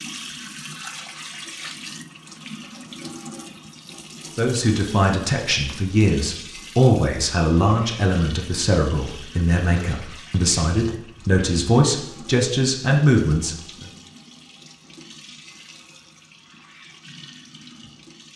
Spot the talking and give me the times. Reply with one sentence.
The talking can be heard from 4.3 to 13.9 s.